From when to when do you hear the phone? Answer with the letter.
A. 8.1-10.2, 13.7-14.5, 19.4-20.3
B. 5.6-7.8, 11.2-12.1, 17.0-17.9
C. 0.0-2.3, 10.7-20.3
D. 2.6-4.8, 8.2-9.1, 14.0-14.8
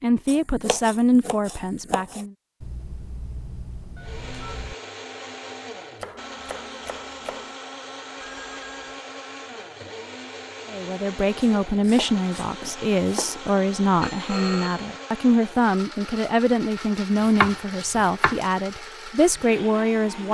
D.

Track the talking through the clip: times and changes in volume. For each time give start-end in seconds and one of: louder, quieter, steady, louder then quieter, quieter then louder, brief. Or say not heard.
0.0-2.3 brief
10.7-20.3 steady.